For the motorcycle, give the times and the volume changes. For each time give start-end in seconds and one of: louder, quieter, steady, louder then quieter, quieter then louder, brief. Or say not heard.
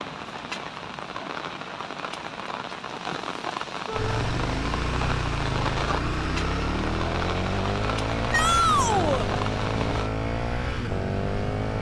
3.9-11.7 steady.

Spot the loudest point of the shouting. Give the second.
9 s.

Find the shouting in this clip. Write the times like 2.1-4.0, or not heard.
3.9-4.3, 8.3-9.3.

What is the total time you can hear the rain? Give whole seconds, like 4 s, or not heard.
10 s.